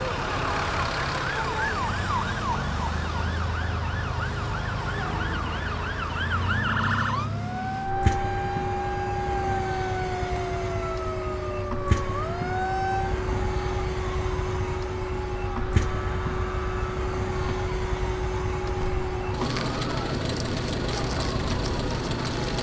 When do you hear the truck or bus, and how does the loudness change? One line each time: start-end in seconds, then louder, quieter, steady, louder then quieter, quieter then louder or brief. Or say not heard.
0.0-22.5 steady.